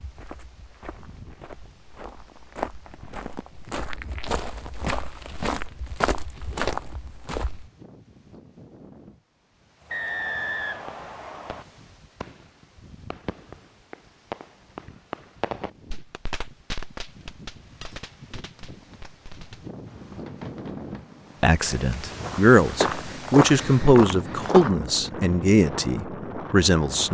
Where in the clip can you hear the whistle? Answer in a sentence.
The whistle can be heard from 9.9 to 11.7 s.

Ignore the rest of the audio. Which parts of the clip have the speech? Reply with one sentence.
The speech can be heard from 21.4 to 27.0 s.